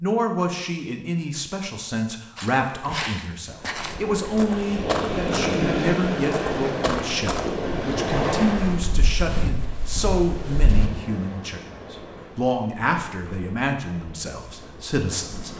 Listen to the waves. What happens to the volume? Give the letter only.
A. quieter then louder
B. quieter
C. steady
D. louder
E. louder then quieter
B.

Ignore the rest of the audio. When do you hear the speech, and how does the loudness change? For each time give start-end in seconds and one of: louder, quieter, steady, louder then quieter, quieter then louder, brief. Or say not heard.
0.0-15.5 steady.